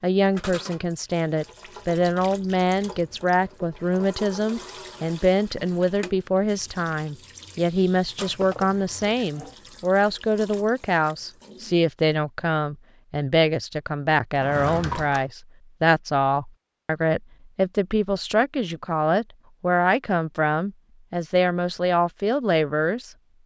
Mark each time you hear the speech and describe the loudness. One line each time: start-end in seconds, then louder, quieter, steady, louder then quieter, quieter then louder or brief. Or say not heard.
0.0-23.1 steady.